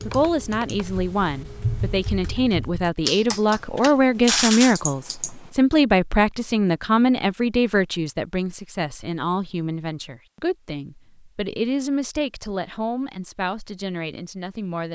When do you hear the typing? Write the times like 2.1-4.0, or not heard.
0.0-5.3.